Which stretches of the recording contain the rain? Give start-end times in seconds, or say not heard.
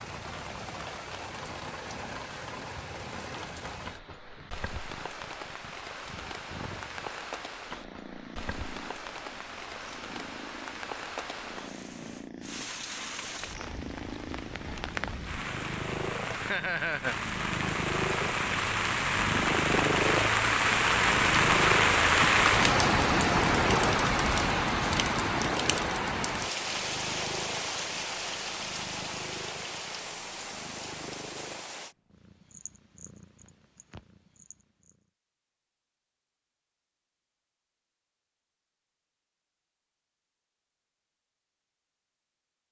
0.0-31.9.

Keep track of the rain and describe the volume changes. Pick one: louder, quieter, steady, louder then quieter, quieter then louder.
louder then quieter.